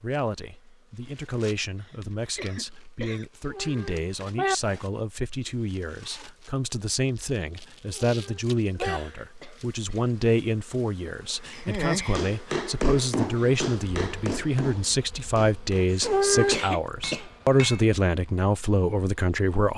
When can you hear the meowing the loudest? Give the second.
16 s.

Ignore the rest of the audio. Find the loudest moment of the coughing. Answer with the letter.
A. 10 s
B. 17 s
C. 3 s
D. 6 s
B.